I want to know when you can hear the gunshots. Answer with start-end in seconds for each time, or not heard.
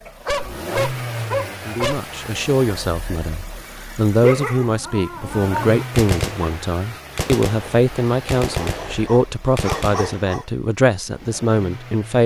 6.0-10.4.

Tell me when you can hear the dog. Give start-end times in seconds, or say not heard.
0.1-2.0, 4.2-5.8, 8.6-10.4.